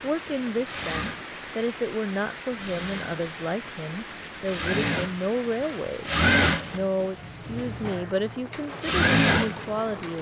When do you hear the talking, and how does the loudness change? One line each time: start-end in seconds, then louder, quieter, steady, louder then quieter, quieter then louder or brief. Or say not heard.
0.0-10.1 steady.